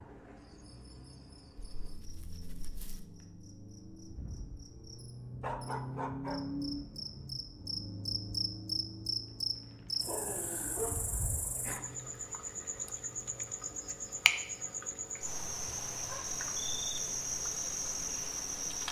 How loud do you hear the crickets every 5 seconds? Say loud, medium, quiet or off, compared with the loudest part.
quiet, loud, loud, loud.